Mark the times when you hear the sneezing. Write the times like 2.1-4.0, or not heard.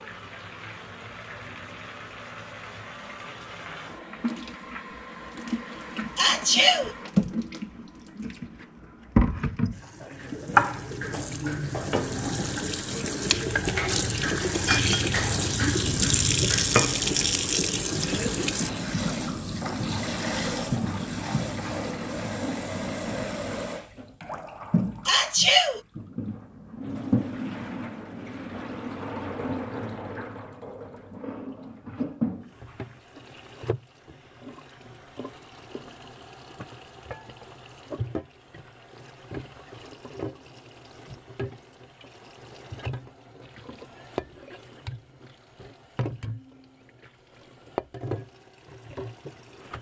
6.2-7.0, 25.1-25.8.